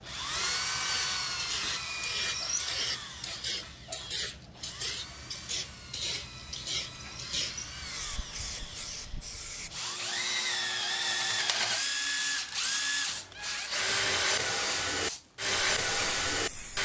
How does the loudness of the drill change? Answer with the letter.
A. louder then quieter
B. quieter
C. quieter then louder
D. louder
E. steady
C.